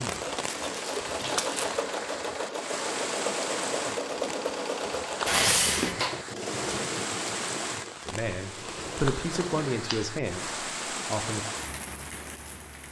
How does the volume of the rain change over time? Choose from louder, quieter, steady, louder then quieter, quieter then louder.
steady.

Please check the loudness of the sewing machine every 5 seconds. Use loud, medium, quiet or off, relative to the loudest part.
loud, loud, off.